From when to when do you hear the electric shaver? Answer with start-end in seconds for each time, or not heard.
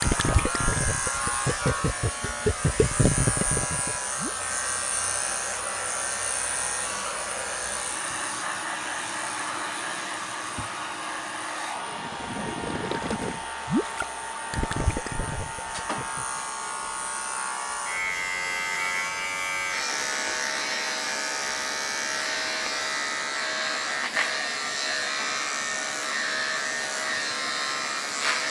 0.0-28.4.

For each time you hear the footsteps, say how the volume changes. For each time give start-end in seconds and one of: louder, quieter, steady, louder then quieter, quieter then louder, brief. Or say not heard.
not heard.